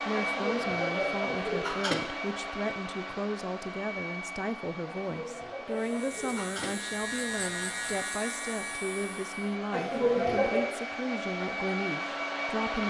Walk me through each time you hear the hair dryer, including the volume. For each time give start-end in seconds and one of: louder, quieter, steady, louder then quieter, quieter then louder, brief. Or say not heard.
0.0-12.8 quieter then louder.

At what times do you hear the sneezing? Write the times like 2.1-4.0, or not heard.
0.1-1.9, 4.8-6.7, 9.7-10.7.